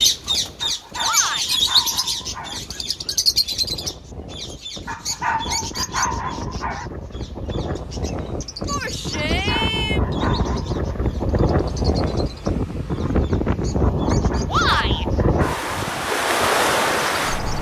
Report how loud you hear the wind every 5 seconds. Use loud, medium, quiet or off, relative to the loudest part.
quiet, medium, loud, loud.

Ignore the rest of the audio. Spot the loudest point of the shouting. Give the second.
15 s.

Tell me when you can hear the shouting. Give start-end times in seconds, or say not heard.
1.0-1.6, 8.7-10.0, 14.4-15.1.